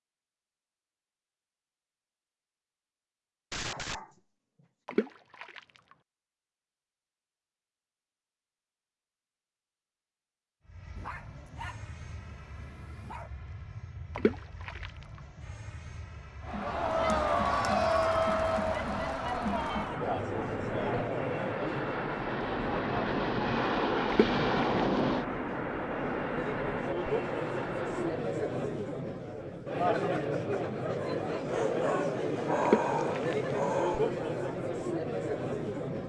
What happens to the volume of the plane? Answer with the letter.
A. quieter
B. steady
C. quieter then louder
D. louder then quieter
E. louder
E.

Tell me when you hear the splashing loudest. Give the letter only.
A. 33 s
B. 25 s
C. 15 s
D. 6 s
A.